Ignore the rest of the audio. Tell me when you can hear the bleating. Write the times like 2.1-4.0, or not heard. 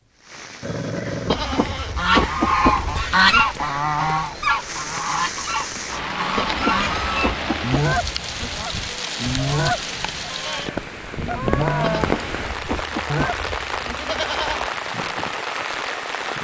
1.2-3.5, 6.3-8.6, 11.8-14.7.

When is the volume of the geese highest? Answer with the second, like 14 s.
3 s.